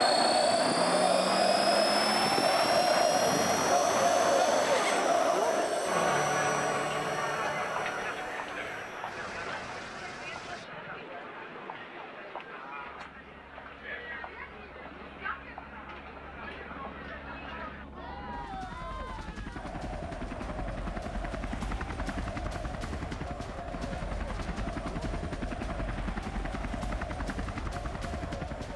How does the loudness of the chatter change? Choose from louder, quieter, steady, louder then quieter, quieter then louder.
quieter.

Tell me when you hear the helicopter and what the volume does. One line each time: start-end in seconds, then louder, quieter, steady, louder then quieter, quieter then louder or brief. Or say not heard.
0.0-28.7 quieter then louder.